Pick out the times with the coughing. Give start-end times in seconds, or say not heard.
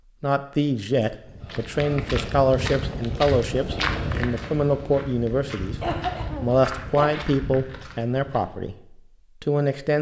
5.8-7.2.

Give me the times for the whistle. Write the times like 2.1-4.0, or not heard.
not heard.